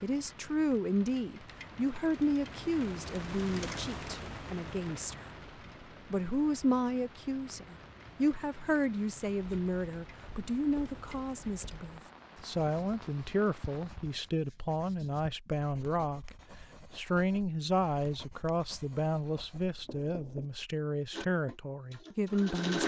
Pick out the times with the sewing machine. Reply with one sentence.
The sewing machine can be heard from 21.1 to 22.8 s.